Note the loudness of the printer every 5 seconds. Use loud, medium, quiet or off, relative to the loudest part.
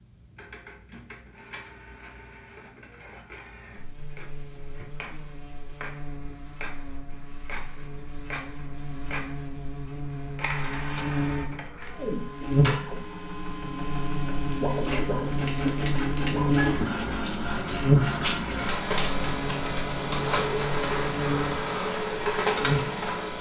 quiet, quiet, medium, loud, loud.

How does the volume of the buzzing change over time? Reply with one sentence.
The volume of the buzzing goes up, then down.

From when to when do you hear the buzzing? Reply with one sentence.
You can hear the buzzing from 3.8 to 23.3 s.